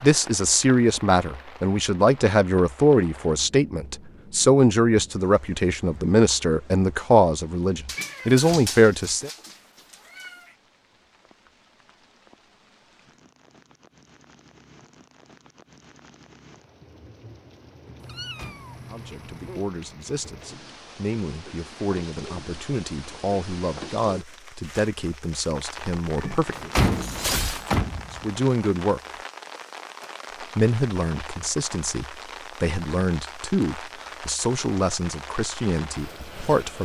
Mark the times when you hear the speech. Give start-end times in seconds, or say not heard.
0.0-9.3, 18.9-26.7, 28.1-29.0, 30.4-36.8.